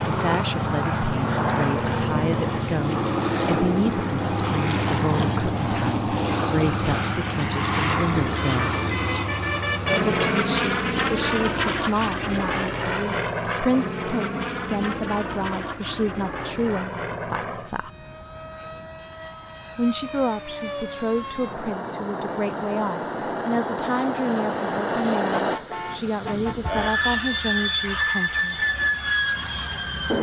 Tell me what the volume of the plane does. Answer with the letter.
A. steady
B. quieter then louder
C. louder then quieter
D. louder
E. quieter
B.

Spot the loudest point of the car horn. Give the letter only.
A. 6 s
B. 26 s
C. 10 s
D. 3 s
C.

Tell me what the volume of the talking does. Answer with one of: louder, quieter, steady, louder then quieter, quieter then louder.
steady.